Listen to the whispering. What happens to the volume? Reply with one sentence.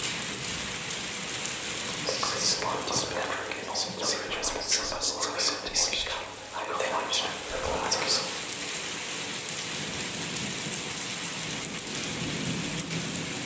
The volume of the whispering stays about the same.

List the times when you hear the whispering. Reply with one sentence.
You can hear the whispering from 1.8 to 8.4 s.